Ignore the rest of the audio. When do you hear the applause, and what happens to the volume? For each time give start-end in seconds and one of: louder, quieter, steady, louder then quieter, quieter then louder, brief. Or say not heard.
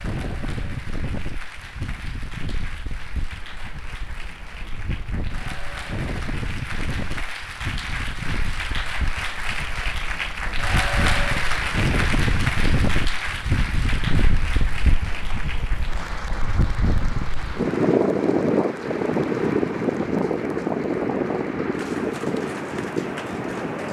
0.0-23.8 louder then quieter.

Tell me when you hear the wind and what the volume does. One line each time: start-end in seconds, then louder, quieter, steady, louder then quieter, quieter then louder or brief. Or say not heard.
0.0-23.8 louder.